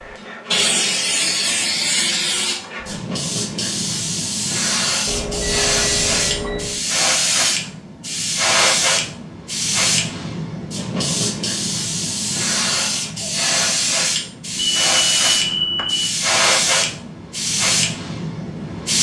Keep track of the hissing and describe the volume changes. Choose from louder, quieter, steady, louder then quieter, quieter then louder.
steady.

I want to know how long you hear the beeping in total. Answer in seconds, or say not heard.
3 s.